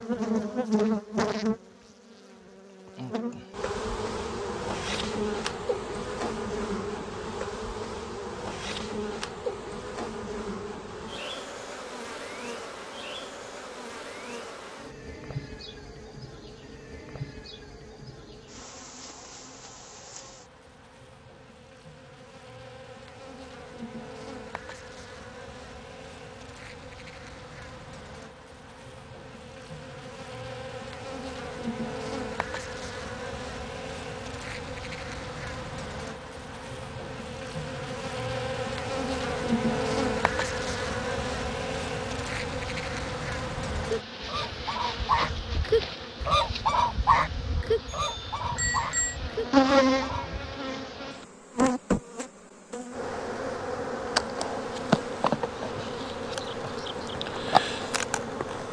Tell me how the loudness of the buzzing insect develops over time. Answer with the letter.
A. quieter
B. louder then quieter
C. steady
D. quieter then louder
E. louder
D.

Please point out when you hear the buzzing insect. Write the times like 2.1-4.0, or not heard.
0.0-58.6.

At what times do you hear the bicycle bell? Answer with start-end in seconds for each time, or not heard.
47.9-49.1.